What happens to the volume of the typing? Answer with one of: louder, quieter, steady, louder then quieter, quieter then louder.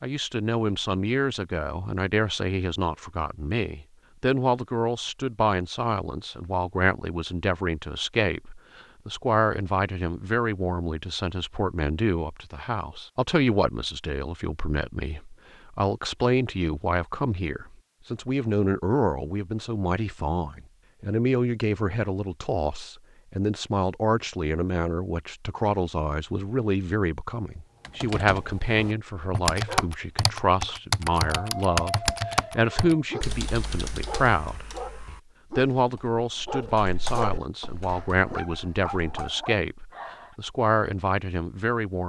quieter then louder.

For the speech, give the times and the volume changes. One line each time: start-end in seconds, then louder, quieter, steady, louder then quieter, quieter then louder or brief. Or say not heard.
0.0-42.0 steady.